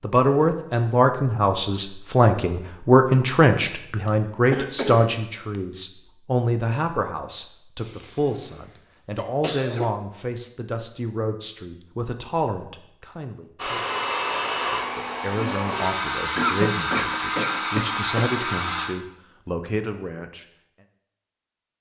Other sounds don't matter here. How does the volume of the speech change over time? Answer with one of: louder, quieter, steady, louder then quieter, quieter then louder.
quieter.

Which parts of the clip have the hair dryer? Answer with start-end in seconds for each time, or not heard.
13.6-18.9.